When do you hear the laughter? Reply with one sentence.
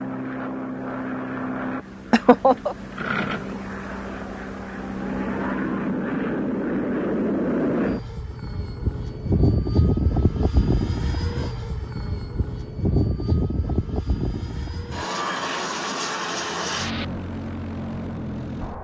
You can hear the laughter from 2.1 to 2.8 s.